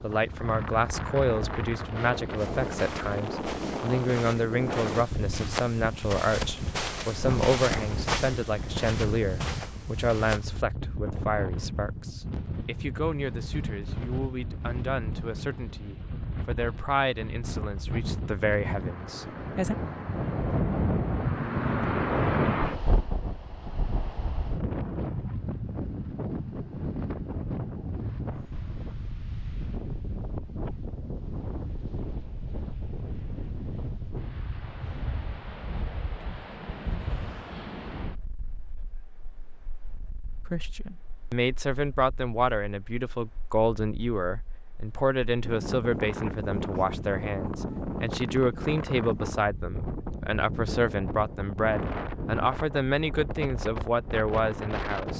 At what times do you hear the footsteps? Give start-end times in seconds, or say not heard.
2.4-10.6.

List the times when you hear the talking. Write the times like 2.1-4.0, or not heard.
0.0-19.8, 40.5-55.1.